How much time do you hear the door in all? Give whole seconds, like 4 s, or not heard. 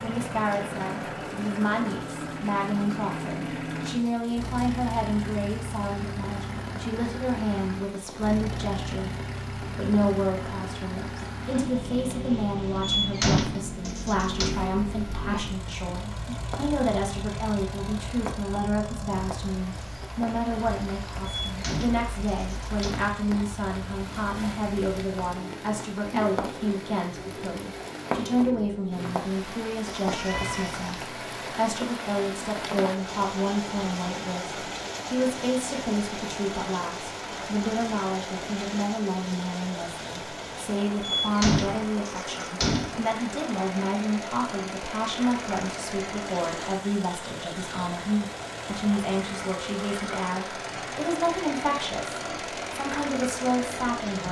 5 s.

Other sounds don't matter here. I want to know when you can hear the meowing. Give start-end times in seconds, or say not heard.
30.0-30.8.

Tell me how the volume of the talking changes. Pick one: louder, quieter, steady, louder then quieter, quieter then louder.
steady.